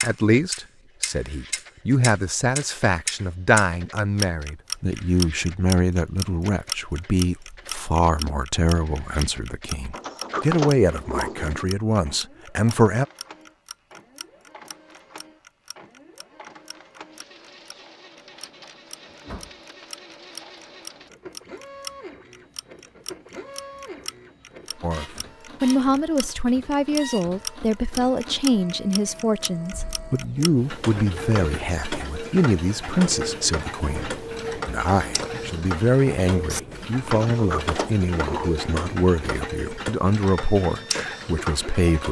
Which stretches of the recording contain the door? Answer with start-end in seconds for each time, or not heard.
9.9-11.7, 19.1-19.6, 37.1-39.0.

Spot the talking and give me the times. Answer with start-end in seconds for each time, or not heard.
0.0-13.1, 24.8-42.0.